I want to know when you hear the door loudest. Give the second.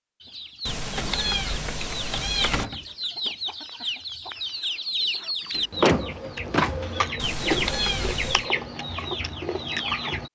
6 s.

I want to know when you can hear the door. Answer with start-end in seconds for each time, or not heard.
2.4-3.3, 5.5-7.1.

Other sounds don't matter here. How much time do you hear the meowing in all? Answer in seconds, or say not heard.
3 s.